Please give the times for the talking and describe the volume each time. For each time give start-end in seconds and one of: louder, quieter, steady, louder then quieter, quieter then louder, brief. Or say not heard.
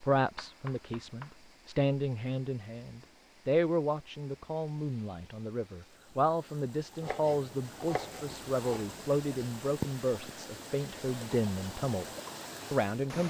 0.0-12.1 steady
12.7-13.2 brief.